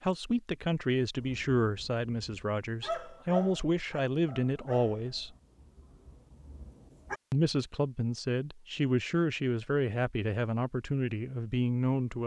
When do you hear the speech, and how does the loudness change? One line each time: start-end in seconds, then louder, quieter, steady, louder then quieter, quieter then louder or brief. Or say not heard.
0.0-5.3 quieter then louder
7.3-12.2 steady.